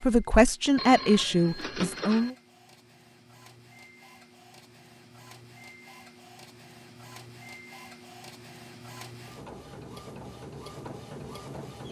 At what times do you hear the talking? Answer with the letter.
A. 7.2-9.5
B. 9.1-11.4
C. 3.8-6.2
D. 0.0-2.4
D.